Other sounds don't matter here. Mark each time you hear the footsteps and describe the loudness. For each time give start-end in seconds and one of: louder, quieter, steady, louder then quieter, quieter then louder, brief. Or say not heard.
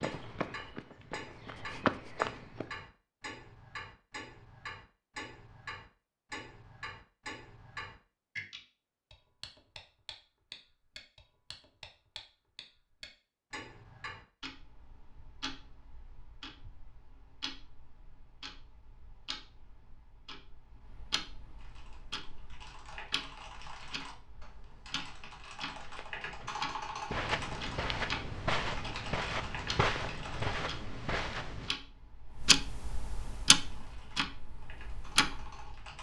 0.0-2.7 brief
25.7-31.8 louder.